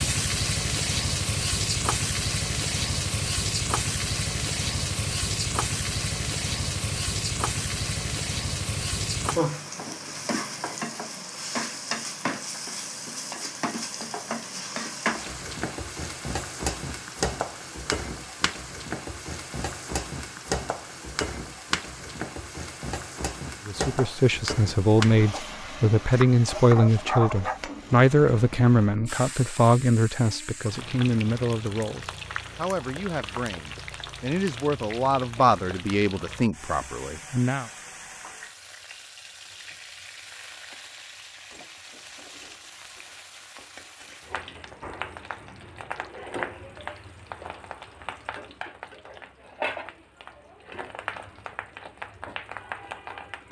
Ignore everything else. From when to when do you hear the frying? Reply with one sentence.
You can hear the frying from 0.0 to 53.4 s.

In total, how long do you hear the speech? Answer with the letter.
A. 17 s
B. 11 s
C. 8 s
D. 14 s
D.